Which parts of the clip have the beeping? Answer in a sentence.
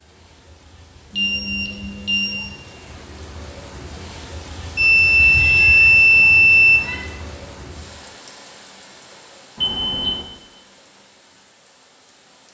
You can hear the beeping from 1.1 to 2.5 s, from 4.8 to 6.8 s and from 9.6 to 10.2 s.